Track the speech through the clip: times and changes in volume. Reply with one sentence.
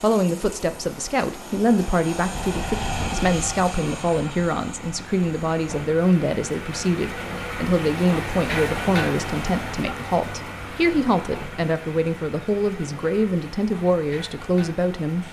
You can hear the speech from 0.0 to 15.2 s, at a steady volume.